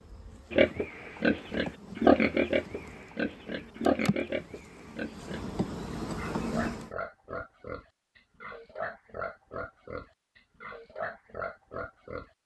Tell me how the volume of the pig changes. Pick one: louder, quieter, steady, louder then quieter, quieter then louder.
quieter.